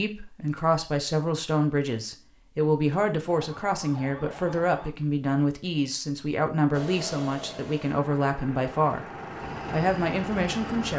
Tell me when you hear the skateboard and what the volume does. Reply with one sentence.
You can't hear the skateboard here.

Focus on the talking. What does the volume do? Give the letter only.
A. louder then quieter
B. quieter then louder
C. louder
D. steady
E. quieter
D.